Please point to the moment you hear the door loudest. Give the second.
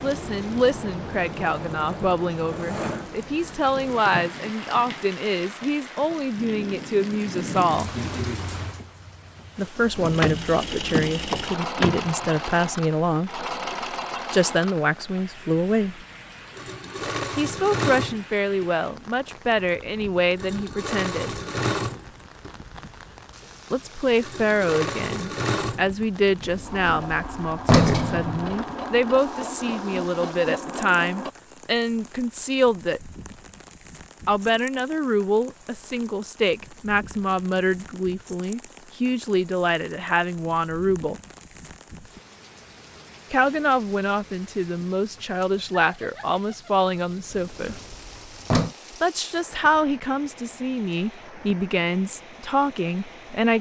28 s.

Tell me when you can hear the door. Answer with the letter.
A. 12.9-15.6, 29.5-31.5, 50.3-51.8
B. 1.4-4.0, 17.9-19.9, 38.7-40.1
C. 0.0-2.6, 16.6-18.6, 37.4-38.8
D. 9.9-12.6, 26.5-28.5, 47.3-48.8
D.